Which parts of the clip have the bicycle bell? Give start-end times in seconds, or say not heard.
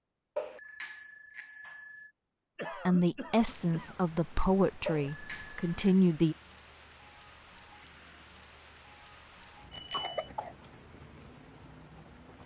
0.3-2.1, 4.8-6.0, 9.7-10.3.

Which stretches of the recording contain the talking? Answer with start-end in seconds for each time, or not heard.
2.9-6.3.